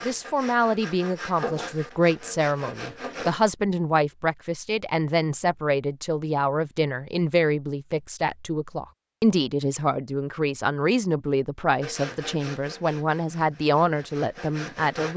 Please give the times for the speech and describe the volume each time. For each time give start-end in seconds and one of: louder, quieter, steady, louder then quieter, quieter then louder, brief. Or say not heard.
0.1-15.1 steady.